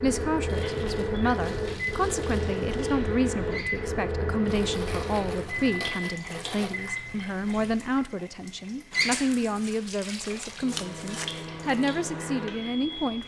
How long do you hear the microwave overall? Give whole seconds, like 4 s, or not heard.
10 s.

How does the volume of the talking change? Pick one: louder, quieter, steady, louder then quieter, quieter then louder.
steady.